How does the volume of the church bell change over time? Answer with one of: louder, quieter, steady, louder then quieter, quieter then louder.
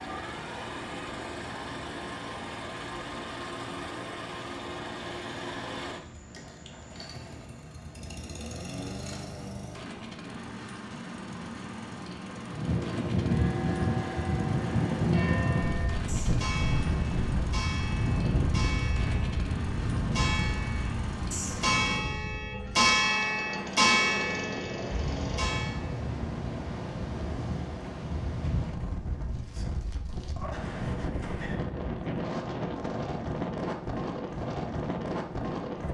louder.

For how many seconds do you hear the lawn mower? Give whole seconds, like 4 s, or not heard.
26 s.